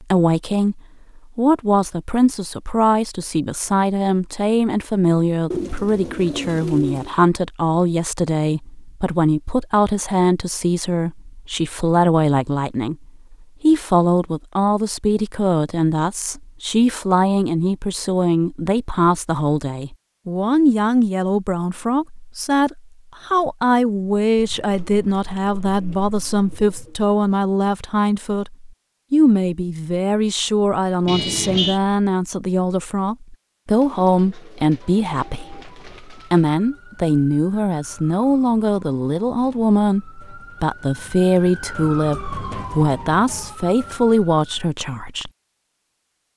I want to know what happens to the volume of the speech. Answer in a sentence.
The volume of the speech stays about the same.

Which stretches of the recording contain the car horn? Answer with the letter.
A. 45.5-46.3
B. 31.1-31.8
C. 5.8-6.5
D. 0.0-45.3
B.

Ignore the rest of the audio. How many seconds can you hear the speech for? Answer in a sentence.
The speech can be heard for 45 seconds in total.